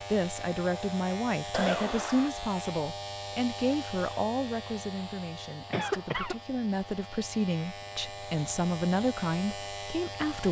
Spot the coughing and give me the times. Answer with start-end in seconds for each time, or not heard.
1.5-2.3, 5.7-6.3.